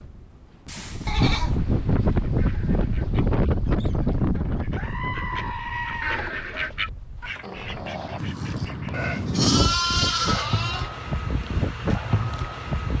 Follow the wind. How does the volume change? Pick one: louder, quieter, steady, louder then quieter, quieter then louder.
quieter then louder.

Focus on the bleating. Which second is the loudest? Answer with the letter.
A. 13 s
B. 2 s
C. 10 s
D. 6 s
C.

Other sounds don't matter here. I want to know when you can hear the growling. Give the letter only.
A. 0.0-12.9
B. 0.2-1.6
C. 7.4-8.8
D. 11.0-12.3
C.